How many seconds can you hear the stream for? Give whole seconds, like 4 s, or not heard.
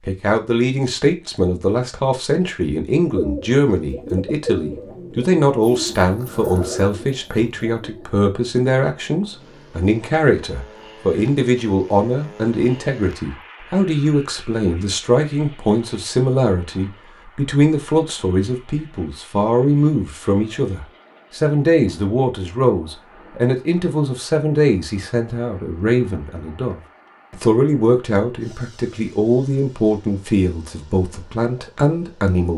not heard.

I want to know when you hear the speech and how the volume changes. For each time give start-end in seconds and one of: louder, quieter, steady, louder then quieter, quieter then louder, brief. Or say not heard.
0.1-32.5 steady.